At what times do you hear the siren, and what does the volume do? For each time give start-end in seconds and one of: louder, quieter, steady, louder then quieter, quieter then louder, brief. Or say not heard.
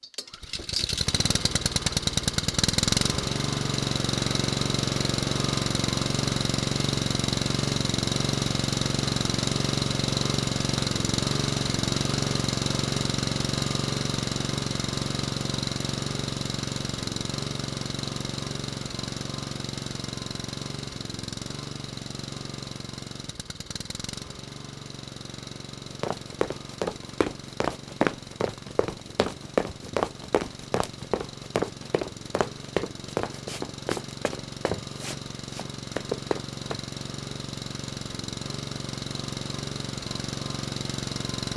not heard.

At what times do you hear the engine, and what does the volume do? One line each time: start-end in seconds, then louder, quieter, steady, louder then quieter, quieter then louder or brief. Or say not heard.
0.0-41.5 quieter then louder.